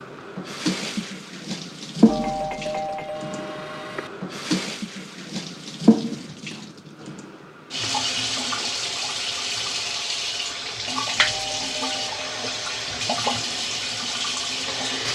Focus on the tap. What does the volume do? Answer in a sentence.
The volume of the tap stays about the same.